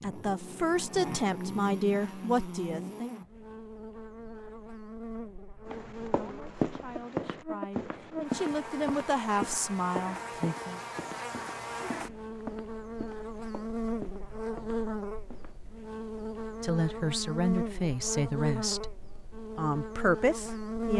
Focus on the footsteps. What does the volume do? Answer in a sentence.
The loudness of the footsteps goes down.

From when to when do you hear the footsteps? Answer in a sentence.
You can hear the footsteps from 5.7 to 15.6 s.